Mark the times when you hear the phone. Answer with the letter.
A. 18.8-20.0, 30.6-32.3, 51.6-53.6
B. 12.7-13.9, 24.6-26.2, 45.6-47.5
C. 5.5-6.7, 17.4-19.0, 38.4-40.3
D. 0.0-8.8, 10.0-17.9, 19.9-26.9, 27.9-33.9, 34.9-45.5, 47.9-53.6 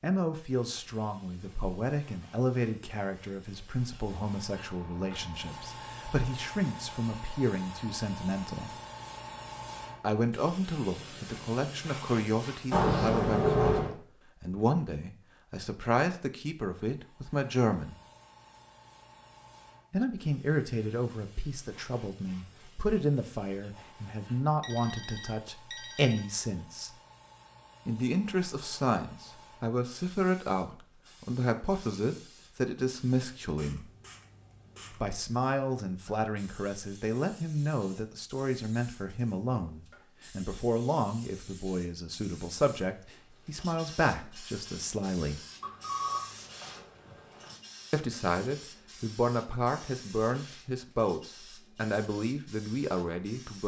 B.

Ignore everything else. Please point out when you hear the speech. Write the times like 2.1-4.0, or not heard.
0.0-8.8, 10.0-17.9, 19.9-26.9, 27.9-33.9, 34.9-45.5, 47.9-53.6.